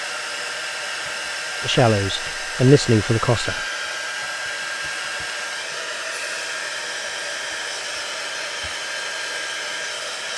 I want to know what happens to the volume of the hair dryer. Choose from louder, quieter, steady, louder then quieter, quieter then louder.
steady.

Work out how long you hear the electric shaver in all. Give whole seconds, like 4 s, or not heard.
not heard.